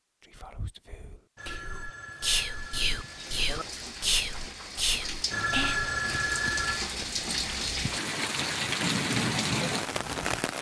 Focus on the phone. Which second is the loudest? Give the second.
6 s.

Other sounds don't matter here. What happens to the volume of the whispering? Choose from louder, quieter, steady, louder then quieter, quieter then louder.
louder.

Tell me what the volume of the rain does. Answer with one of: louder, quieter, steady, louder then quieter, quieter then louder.
louder.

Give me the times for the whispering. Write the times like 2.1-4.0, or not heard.
0.2-6.0.